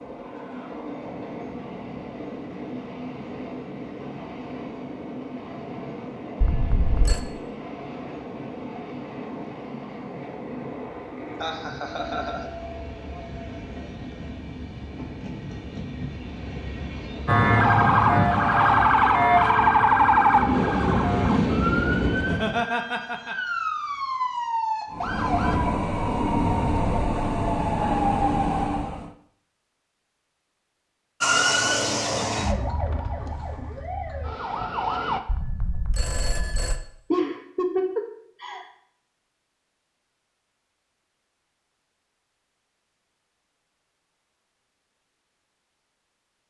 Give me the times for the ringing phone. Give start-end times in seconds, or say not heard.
6.4-7.2, 35.2-36.8.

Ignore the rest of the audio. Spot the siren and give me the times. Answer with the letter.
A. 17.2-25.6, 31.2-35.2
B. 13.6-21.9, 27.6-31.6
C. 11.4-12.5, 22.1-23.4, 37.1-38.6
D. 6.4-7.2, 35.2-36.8
A.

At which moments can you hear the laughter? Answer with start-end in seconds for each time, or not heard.
11.4-12.5, 22.1-23.4, 37.1-38.6.